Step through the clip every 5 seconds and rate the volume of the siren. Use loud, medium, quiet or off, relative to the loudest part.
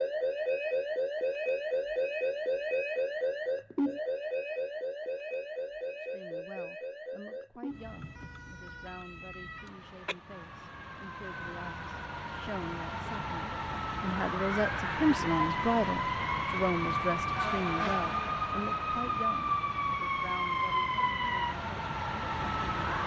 loud, medium, medium, loud, loud.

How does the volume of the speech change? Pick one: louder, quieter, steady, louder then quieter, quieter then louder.
louder then quieter.